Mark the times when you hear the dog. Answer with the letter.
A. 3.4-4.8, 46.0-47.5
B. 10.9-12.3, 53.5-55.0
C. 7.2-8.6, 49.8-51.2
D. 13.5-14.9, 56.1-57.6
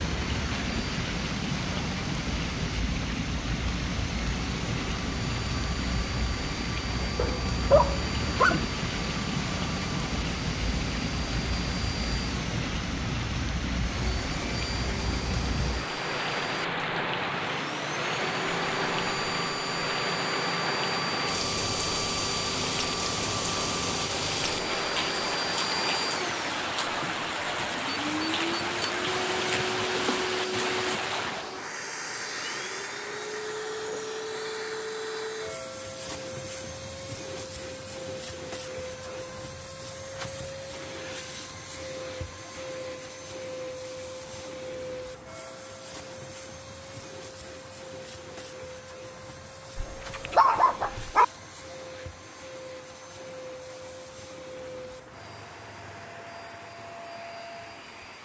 C.